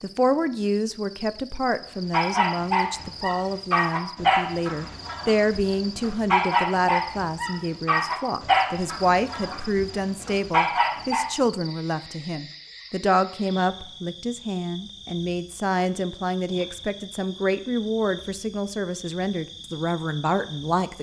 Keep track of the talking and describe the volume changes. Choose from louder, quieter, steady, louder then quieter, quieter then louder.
steady.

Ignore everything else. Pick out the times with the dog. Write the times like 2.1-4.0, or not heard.
2.1-11.2.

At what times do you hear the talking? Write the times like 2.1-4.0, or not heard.
0.0-20.9.